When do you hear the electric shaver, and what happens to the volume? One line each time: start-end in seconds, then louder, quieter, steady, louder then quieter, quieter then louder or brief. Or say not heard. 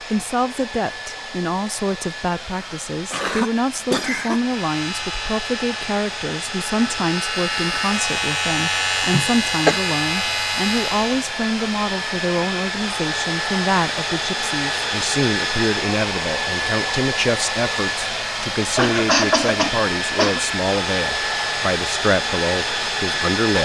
4.4-11.3 louder.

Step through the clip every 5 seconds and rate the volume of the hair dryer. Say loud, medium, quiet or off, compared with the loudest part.
medium, medium, loud, loud, loud.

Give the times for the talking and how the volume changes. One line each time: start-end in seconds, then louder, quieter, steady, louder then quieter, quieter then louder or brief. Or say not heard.
0.1-23.6 steady.